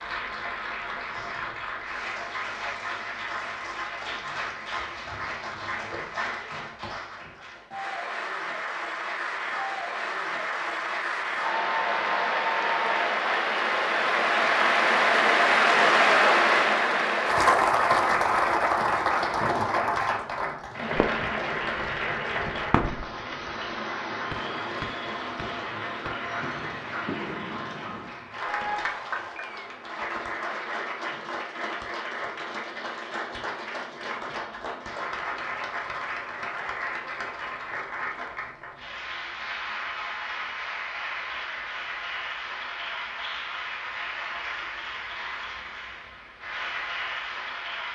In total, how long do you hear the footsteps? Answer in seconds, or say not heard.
not heard.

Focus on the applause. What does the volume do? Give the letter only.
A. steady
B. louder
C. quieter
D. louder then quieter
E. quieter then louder
D.